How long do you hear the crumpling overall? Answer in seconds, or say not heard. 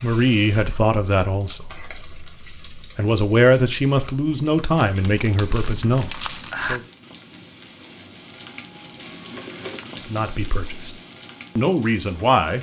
2 s.